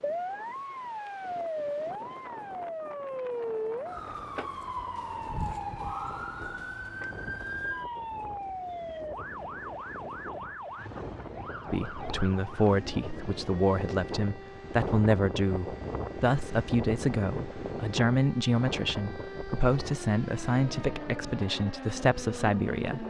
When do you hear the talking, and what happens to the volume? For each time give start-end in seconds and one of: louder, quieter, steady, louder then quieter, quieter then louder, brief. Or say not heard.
11.7-23.0 steady.